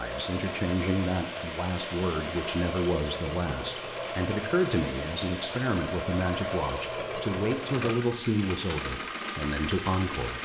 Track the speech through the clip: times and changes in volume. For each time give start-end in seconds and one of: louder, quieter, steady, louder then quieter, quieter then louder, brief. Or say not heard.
0.0-10.4 steady.